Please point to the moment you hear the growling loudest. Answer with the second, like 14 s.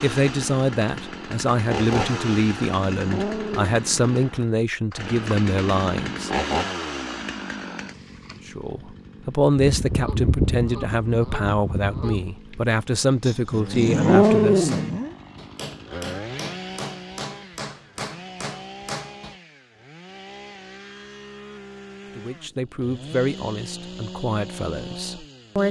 14 s.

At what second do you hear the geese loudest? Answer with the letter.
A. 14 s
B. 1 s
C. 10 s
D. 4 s
C.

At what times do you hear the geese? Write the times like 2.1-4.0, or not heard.
9.6-12.3.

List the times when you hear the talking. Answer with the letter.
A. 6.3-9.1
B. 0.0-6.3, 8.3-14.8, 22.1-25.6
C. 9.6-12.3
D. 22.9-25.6
B.